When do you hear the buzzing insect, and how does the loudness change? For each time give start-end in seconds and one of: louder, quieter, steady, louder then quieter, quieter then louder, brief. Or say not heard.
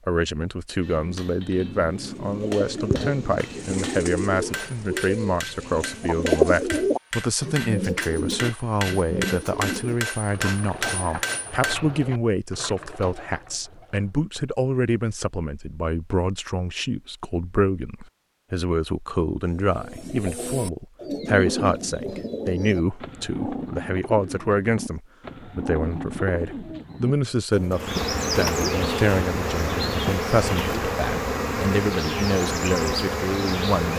27.7-33.9 steady.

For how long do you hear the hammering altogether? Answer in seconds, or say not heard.
11 s.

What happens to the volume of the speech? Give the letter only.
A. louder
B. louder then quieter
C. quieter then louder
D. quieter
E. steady
E.